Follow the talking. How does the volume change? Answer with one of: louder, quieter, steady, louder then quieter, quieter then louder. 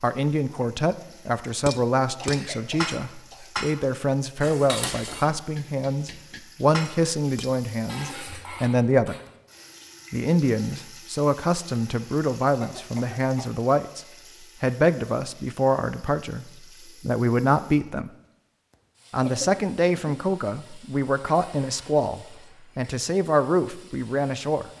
steady.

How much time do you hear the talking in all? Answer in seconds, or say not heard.
23 s.